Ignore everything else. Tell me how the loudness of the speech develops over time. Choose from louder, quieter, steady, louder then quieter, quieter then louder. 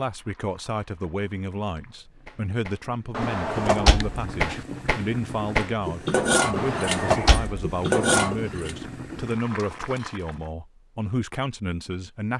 steady.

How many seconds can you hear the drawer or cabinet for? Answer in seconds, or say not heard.
3 s.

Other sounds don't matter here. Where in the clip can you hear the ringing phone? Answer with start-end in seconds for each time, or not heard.
not heard.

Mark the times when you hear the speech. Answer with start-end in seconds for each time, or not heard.
0.0-12.3.